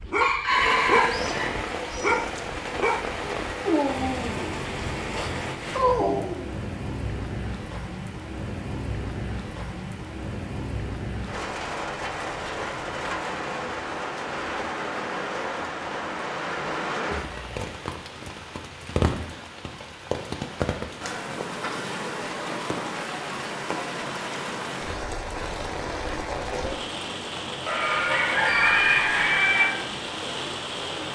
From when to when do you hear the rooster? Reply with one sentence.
The rooster can be heard from 0.2 to 2.1 s and from 27.6 to 29.6 s.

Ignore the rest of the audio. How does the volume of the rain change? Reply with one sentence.
The loudness of the rain stays about the same.